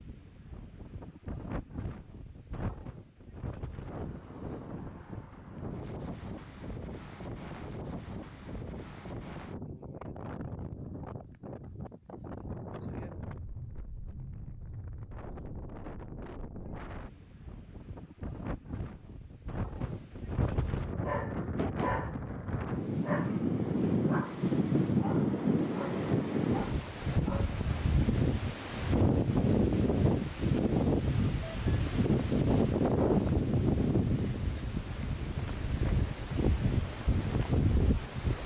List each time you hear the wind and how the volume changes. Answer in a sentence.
The wind can be heard from 0.0 to 38.4 s, getting louder.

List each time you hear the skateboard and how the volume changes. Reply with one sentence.
You can't hear the skateboard here.